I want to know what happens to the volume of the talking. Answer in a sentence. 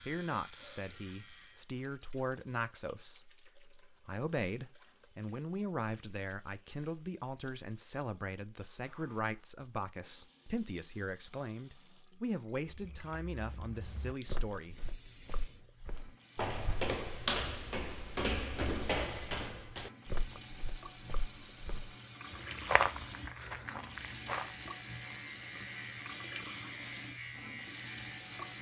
The volume of the talking stays about the same.